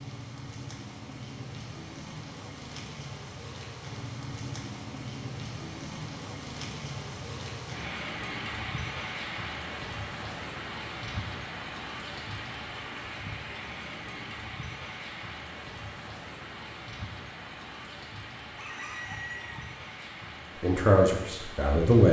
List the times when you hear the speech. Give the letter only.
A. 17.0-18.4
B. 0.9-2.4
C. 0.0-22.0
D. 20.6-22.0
D.